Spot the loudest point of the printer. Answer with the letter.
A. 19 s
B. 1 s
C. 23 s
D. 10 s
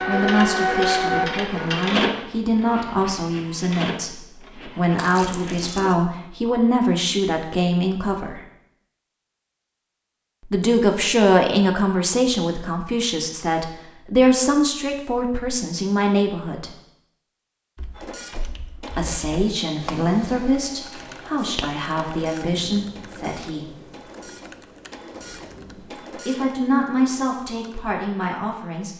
B.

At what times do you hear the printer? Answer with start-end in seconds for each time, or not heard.
0.0-6.0, 17.9-26.5.